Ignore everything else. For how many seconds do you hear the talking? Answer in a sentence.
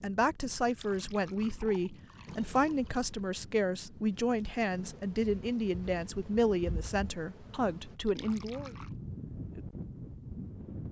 You can hear the talking for 9 seconds altogether.